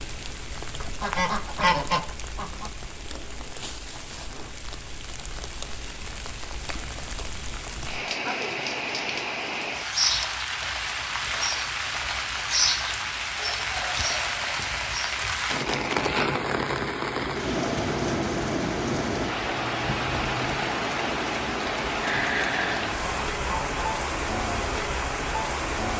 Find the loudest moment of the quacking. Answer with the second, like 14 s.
2 s.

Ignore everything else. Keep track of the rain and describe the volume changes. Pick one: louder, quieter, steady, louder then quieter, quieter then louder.
louder.